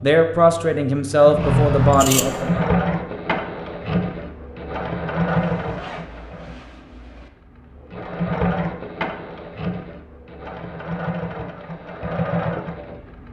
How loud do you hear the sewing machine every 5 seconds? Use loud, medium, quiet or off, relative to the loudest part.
loud, loud, medium.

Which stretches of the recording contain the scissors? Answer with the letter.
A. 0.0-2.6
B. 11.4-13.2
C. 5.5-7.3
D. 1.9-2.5
D.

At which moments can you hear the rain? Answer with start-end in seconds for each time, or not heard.
not heard.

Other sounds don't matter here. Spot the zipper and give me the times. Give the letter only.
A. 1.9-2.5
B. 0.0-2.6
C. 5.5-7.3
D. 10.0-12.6
C.